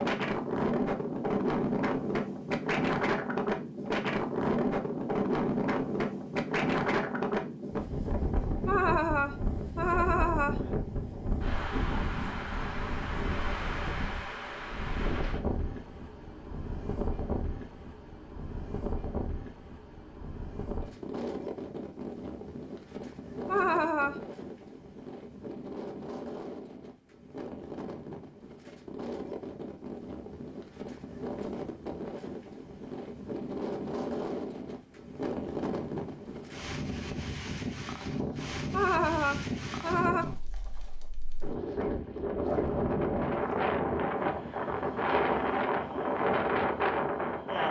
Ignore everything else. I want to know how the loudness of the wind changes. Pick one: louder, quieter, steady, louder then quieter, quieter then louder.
quieter then louder.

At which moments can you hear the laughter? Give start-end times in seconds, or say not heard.
8.7-10.8, 23.4-24.2, 38.7-40.2.